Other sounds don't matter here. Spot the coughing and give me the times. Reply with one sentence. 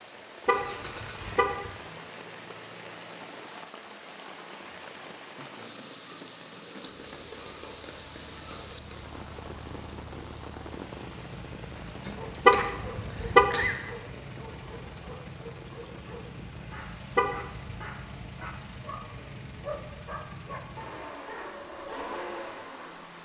You can hear the coughing from 12.0 to 13.8 s.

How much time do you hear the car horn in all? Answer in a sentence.
The car horn can be heard for 3 seconds in total.